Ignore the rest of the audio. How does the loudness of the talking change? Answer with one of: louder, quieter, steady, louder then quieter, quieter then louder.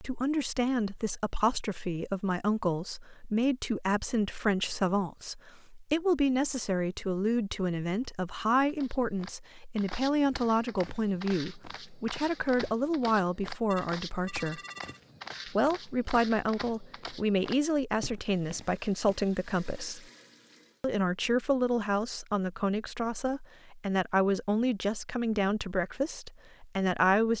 steady.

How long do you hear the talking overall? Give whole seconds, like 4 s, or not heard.
26 s.